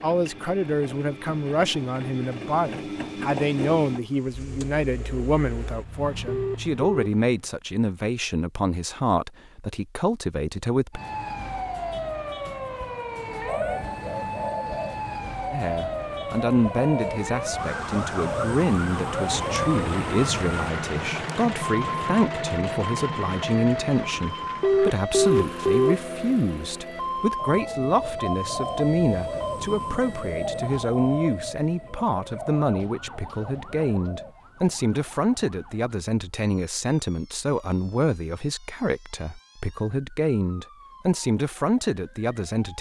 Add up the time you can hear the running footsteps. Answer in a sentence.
You can't hear the running footsteps here.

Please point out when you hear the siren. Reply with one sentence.
The siren can be heard from 10.9 to 42.7 s.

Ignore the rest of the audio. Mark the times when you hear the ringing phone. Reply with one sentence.
You can hear the ringing phone from 6.2 to 7.1 s and from 24.6 to 25.9 s.